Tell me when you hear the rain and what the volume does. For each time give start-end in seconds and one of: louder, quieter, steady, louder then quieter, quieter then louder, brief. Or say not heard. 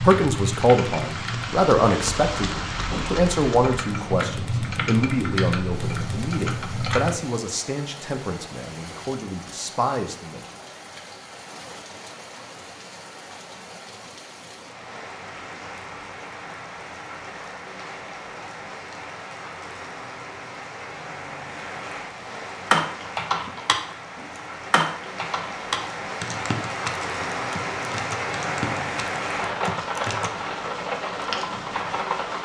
0.0-32.3 quieter then louder.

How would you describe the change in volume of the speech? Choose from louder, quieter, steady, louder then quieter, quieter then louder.
quieter.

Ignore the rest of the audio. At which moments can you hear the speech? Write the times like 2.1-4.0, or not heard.
0.0-10.4.